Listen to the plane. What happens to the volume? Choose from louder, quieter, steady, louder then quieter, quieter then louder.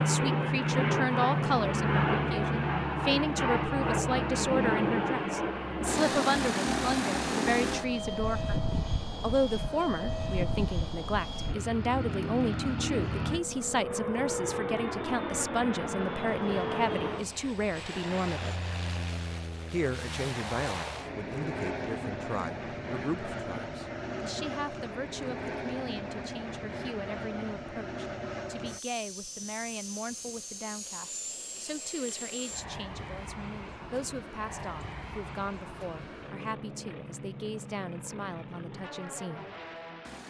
quieter.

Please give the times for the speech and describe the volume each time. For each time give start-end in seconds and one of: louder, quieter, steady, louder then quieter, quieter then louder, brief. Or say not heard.
0.0-8.6 steady
9.2-18.6 steady
19.7-39.5 steady.